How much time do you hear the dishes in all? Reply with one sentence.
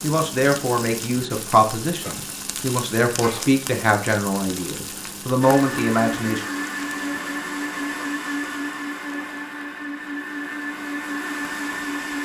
You can't hear the dishes here.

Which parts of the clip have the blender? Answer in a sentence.
The blender can be heard from 5.4 to 12.2 s.